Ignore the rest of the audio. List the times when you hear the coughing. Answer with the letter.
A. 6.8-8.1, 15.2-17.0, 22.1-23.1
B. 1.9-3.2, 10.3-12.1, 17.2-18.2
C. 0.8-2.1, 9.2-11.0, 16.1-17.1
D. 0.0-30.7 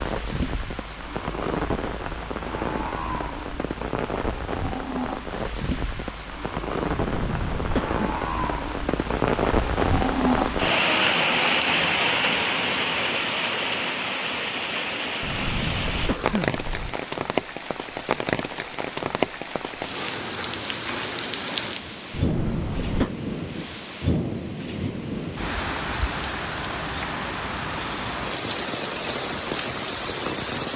A.